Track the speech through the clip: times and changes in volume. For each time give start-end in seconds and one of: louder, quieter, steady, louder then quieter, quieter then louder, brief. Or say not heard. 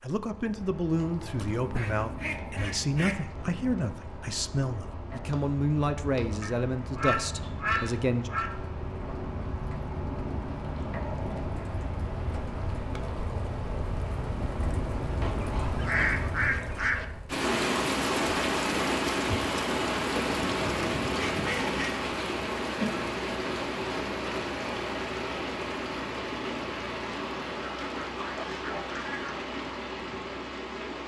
0.0-8.3 steady.